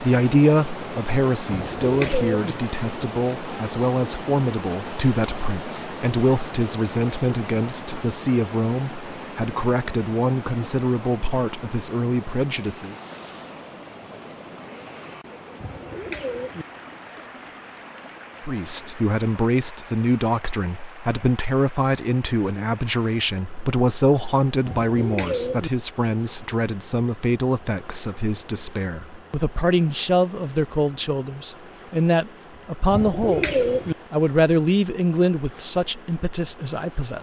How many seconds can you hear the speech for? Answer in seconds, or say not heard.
32 s.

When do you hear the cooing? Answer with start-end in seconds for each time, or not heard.
1.4-2.5, 15.6-16.6, 24.6-25.7, 32.9-34.0.